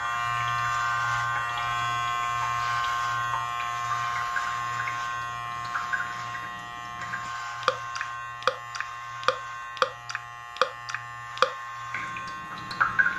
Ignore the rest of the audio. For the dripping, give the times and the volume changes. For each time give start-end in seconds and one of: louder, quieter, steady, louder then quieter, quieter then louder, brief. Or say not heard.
0.0-13.1 louder.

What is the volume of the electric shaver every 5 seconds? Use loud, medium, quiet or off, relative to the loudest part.
loud, medium, medium.